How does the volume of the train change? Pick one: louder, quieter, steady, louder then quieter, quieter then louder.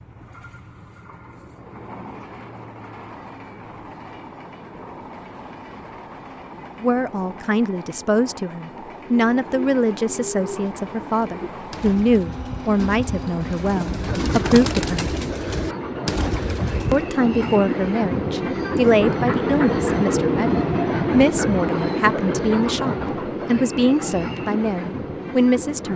louder.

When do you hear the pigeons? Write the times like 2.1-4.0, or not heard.
9.0-17.1.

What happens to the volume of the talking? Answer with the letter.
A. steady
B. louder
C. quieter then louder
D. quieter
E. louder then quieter
A.